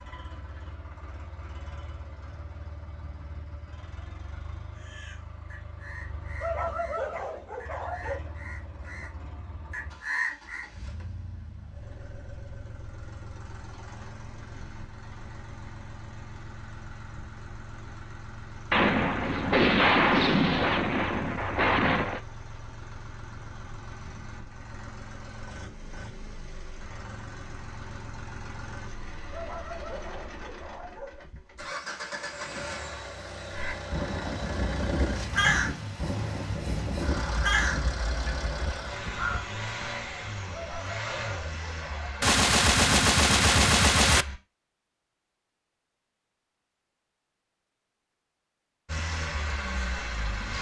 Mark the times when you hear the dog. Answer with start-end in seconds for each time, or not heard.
6.4-8.3, 29.3-31.2, 40.5-42.2.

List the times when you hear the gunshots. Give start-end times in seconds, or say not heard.
18.7-22.2, 42.2-44.2.